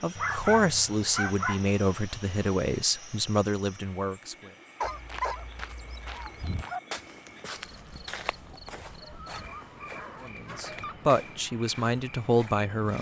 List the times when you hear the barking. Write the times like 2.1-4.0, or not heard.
0.1-1.6, 4.8-6.8, 8.8-11.0.